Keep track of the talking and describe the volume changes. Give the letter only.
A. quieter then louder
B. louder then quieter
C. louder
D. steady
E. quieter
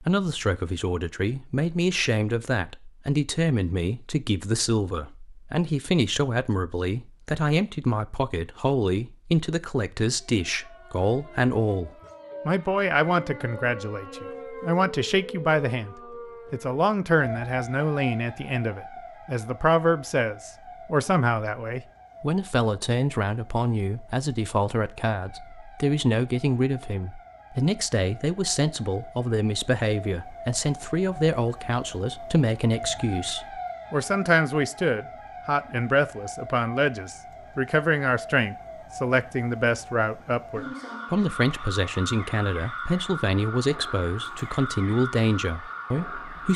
D.